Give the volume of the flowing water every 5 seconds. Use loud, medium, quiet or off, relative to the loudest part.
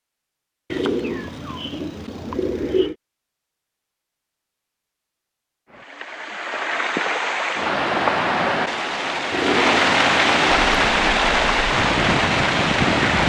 off, loud, loud.